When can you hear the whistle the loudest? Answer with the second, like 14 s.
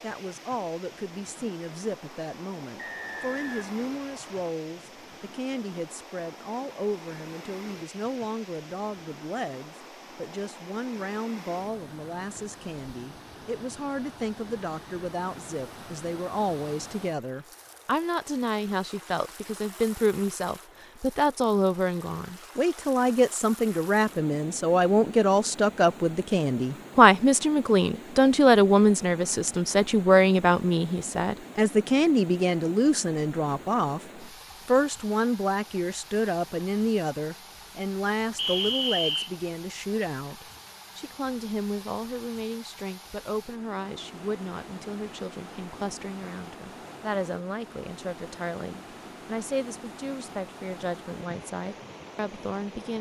39 s.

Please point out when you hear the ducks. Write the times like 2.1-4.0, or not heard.
not heard.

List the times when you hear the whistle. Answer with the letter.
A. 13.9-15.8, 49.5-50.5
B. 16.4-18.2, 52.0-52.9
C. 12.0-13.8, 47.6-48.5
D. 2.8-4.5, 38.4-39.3
D.